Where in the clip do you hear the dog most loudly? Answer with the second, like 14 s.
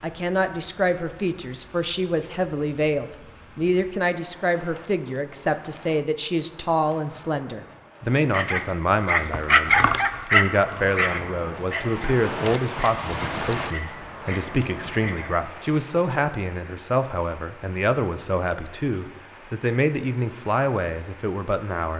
10 s.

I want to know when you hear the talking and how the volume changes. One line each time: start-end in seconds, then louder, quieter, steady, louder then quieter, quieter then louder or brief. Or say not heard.
0.0-21.9 steady.